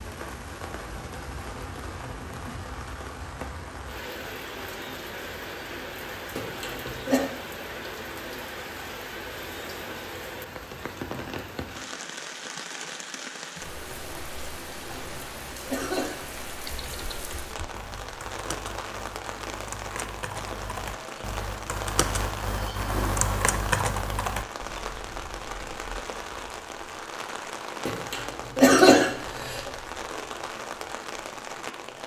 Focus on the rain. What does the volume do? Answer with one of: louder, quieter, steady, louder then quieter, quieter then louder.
steady.